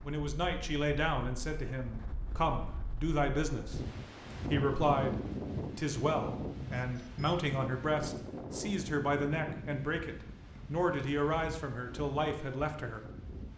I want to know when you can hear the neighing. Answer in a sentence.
The neighing can't be heard in this clip.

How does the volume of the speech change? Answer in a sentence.
The volume of the speech stays about the same.